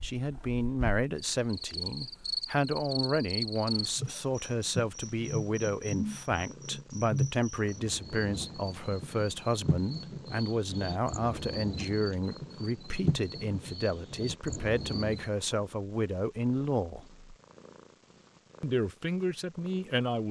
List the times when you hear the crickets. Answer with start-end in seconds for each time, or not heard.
0.0-15.3.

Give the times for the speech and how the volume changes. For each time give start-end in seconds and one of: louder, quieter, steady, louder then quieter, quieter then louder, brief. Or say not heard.
0.0-17.2 steady
18.6-20.2 brief.